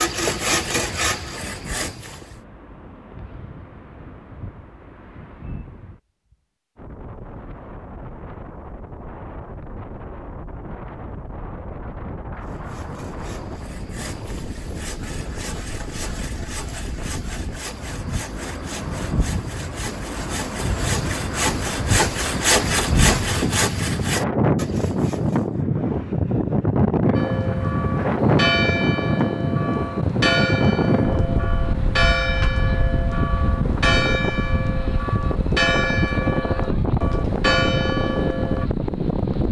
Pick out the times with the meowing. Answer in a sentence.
The meowing can't be heard in this clip.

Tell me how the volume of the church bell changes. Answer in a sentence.
The loudness of the church bell stays about the same.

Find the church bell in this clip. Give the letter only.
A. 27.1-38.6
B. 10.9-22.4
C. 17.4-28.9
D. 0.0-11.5
A.